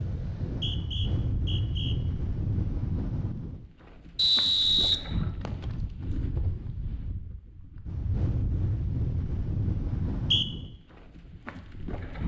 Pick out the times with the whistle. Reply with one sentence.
You can hear the whistle from 0.5 to 1.9 s, from 4.2 to 5.7 s and from 9.9 to 10.4 s.